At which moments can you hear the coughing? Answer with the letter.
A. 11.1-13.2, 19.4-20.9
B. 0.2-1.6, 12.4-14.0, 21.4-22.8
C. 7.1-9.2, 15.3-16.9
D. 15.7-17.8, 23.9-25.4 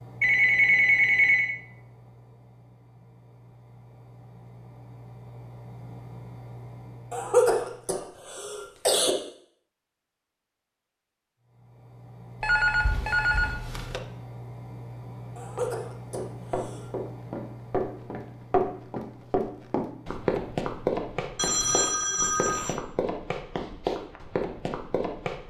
C.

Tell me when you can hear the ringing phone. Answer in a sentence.
The ringing phone can be heard from 0.2 to 1.6 s, from 12.4 to 14.0 s and from 21.4 to 22.8 s.